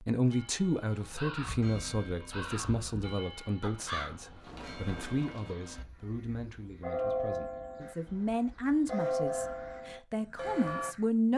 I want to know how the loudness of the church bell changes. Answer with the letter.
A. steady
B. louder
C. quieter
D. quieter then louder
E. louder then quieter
B.